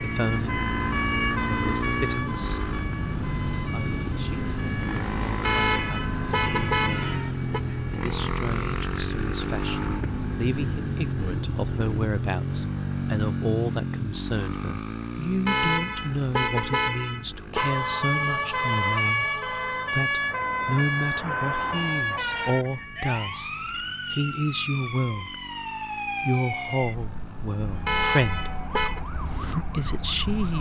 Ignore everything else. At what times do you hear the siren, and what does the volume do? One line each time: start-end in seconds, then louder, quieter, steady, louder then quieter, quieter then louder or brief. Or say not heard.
0.0-8.1 quieter
17.6-30.5 quieter.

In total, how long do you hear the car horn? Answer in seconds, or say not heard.
6 s.